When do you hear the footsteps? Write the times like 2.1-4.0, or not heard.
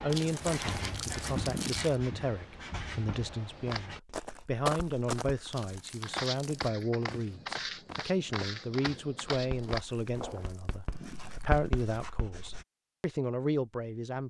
3.5-10.6.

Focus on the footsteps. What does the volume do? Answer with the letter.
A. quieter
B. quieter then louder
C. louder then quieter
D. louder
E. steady
A.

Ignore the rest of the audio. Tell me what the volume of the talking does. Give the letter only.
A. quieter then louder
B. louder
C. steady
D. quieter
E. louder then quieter
C.